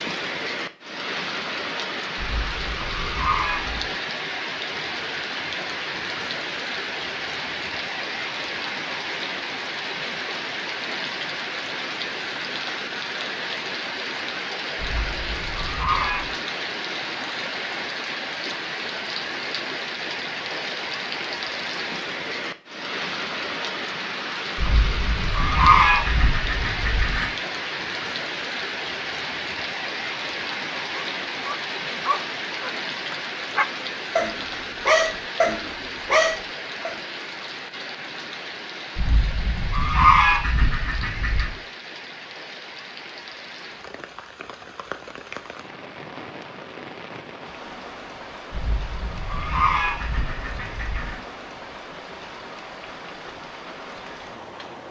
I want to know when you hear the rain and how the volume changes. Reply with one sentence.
You can hear the rain from 0.0 to 54.8 s, getting quieter.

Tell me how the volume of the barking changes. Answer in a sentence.
The volume of the barking goes up.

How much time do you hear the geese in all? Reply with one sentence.
You can hear the geese for 11 seconds altogether.